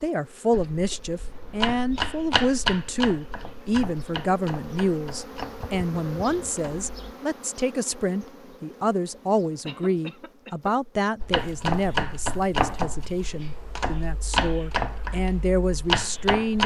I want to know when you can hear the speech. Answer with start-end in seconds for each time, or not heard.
0.0-16.6.